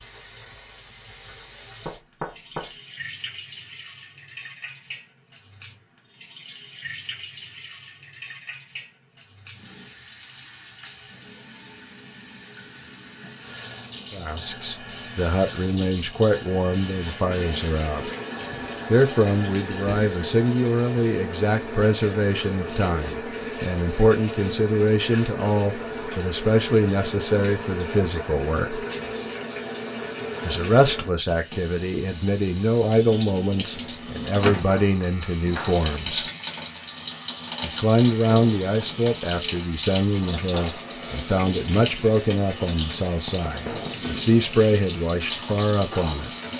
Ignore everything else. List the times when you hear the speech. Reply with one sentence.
The speech can be heard from 14.1 to 18.1 s, from 18.9 to 28.8 s, from 30.4 to 36.2 s and from 37.6 to 46.3 s.